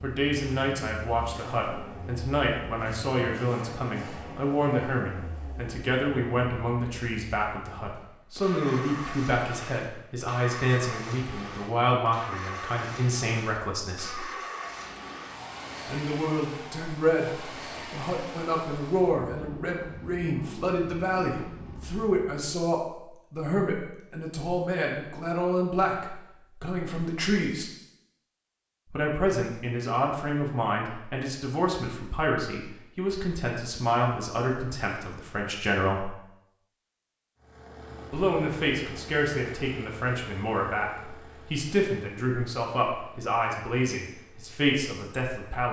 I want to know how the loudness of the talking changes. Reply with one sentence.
The volume of the talking stays about the same.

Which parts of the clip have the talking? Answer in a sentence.
The talking can be heard from 0.0 to 14.2 s, from 15.8 to 27.7 s, from 28.9 to 36.1 s and from 38.1 to 45.6 s.